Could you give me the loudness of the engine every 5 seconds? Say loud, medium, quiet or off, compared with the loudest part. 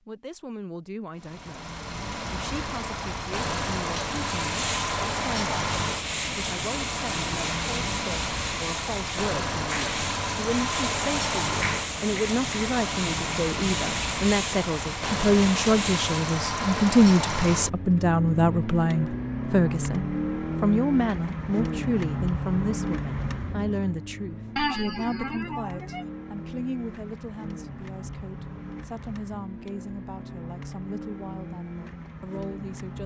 loud, loud, loud, loud, loud, medium, medium.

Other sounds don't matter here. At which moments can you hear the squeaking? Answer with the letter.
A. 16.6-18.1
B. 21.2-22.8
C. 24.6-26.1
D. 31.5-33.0
C.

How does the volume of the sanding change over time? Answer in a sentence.
The loudness of the sanding stays about the same.